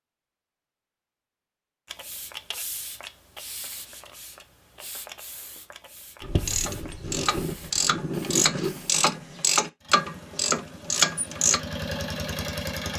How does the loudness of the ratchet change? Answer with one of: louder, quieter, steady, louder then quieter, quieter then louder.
louder.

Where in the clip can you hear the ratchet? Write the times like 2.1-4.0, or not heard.
6.2-11.6.